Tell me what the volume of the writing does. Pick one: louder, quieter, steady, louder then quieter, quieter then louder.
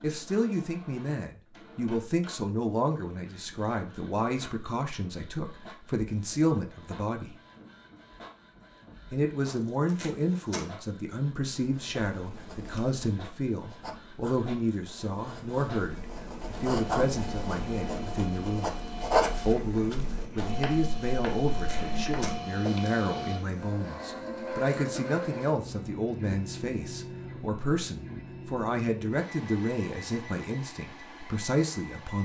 louder then quieter.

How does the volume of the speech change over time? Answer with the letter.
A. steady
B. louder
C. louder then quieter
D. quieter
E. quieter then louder
A.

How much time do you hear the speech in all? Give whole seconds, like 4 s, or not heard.
30 s.